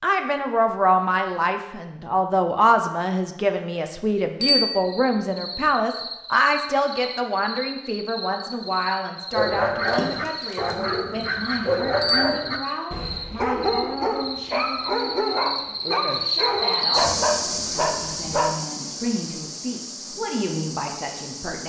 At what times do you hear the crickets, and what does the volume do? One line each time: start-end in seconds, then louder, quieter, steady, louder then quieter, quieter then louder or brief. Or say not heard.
4.8-21.6 louder then quieter.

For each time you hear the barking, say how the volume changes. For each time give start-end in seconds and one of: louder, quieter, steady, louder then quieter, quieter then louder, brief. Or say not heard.
9.3-18.6 steady.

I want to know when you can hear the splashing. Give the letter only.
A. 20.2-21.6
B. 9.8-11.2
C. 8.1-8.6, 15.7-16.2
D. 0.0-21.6
B.